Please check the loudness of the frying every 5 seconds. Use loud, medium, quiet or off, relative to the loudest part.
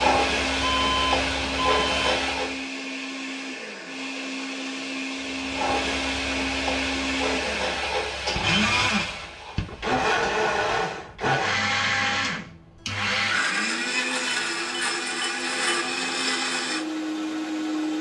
loud, medium, off, off.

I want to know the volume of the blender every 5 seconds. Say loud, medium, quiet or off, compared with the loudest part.
medium, loud, loud, loud.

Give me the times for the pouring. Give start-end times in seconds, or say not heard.
not heard.